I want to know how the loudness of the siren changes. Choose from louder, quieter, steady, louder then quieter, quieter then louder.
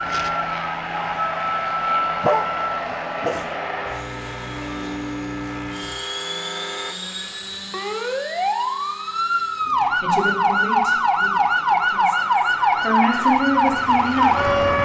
quieter then louder.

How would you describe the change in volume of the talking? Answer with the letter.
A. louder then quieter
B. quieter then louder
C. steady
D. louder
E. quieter
B.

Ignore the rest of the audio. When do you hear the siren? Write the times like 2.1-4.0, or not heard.
0.0-14.7.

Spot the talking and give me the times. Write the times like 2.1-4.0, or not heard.
10.0-14.4.